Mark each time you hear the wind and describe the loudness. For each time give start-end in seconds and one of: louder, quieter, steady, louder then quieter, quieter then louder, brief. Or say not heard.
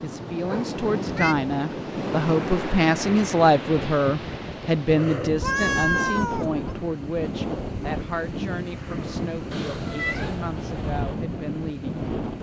0.0-12.3 steady.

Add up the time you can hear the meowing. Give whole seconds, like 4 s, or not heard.
3 s.